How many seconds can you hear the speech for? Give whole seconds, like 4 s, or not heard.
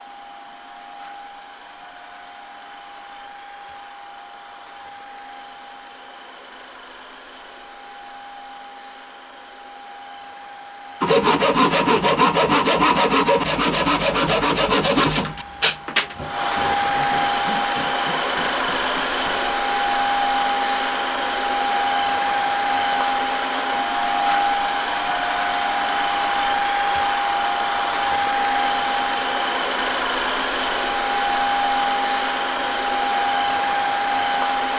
not heard.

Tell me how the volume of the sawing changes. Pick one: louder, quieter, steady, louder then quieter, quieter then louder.
quieter.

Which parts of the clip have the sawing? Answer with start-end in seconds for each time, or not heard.
11.0-19.5.